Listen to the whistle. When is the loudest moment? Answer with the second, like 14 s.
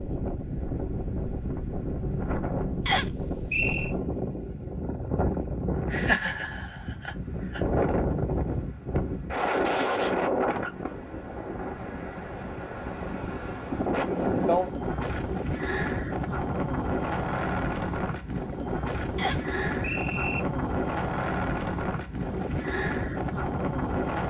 3 s.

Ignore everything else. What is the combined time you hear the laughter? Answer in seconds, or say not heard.
2 s.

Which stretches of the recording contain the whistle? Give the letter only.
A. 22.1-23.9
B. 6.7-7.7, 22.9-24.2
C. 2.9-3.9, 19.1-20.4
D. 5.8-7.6
C.